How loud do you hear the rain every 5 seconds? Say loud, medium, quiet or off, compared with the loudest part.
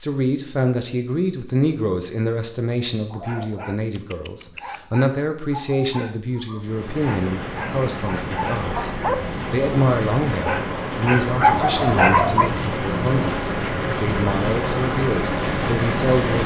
off, medium, loud, loud.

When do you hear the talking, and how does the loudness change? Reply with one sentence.
The talking can be heard from 0.0 to 16.4 s, at a steady volume.